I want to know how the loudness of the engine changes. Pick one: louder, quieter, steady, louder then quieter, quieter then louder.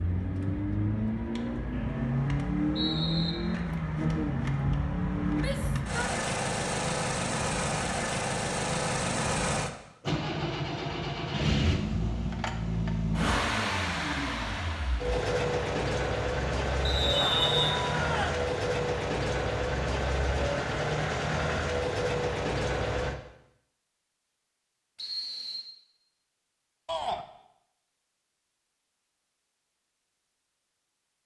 steady.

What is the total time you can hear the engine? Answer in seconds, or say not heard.
23 s.